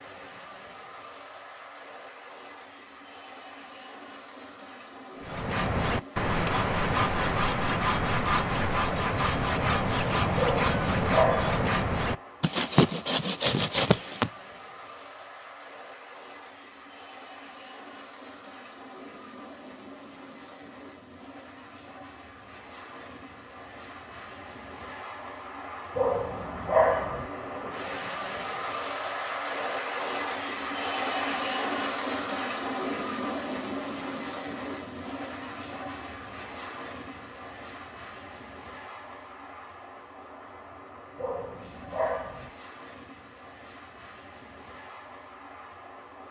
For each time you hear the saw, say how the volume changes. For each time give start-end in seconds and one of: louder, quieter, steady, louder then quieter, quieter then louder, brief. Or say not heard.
5.2-14.3 steady.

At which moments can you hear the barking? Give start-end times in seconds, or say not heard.
10.3-11.6, 25.9-27.2, 41.1-42.5.